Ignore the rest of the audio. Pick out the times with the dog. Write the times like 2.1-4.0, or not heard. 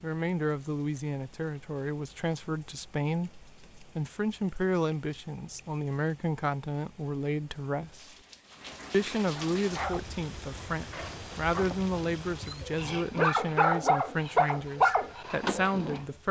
9.3-16.0.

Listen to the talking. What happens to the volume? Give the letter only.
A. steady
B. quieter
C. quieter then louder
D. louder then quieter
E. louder
A.